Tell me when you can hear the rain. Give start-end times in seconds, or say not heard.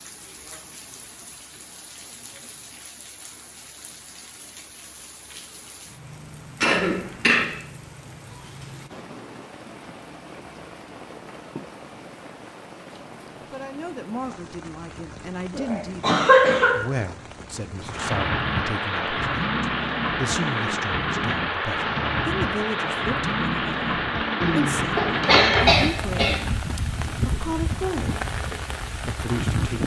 0.0-29.8.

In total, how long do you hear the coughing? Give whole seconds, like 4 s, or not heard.
4 s.